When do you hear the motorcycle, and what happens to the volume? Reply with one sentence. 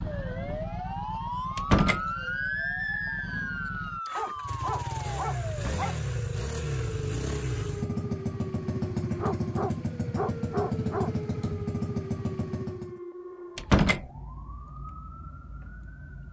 The motorcycle can be heard from 0.0 to 13.0 s, getting louder.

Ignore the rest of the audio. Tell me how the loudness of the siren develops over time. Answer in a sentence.
The volume of the siren goes down.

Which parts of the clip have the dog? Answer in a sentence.
The dog can be heard from 4.2 to 6.0 s and from 9.2 to 11.2 s.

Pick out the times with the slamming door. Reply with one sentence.
You can hear the slamming door from 1.6 to 2.0 s, from 5.5 to 6.0 s and from 13.6 to 14.1 s.